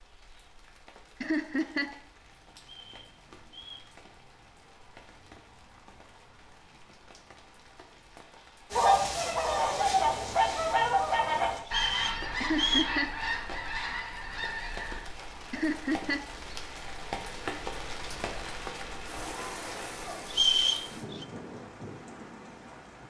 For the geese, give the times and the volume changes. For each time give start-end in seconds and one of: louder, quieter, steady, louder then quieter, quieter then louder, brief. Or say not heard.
8.7-15.1 quieter.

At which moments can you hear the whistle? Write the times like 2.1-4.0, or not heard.
2.6-3.9, 11.7-12.9, 20.3-21.2.